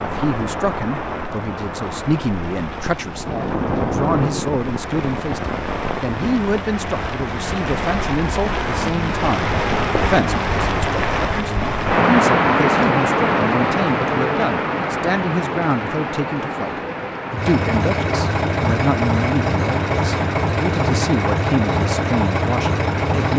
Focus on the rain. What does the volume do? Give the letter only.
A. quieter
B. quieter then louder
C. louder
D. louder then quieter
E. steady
D.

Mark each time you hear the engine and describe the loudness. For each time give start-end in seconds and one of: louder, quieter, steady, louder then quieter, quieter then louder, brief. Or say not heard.
17.4-23.3 steady.